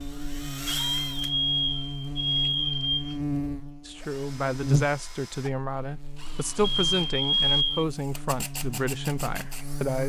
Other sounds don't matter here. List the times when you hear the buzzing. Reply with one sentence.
The buzzing can be heard from 0.0 to 10.0 s.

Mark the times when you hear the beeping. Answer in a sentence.
The beeping can be heard from 0.7 to 3.1 s and from 6.6 to 7.8 s.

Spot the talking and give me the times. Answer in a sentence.
The talking can be heard from 3.9 to 10.0 s.